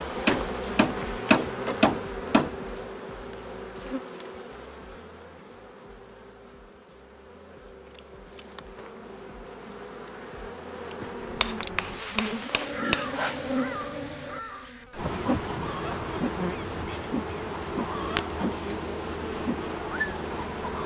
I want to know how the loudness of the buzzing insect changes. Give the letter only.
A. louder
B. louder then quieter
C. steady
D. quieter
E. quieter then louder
E.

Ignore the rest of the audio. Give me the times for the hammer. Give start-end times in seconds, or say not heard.
0.2-2.6, 11.4-13.1.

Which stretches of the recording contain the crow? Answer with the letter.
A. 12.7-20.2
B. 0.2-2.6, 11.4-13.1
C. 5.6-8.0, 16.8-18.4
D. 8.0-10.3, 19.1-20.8
A.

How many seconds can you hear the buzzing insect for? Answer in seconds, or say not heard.
21 s.